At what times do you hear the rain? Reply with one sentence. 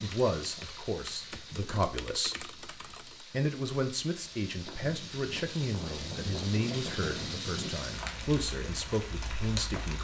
You can hear the rain from 0.0 to 10.0 s.